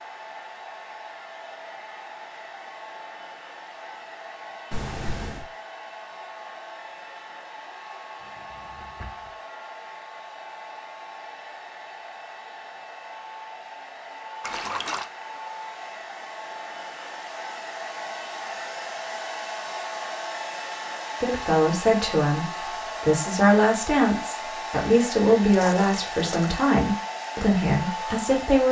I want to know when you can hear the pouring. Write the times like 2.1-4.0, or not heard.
4.7-5.5, 14.4-15.1, 25.5-26.6.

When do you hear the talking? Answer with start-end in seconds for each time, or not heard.
21.2-28.6.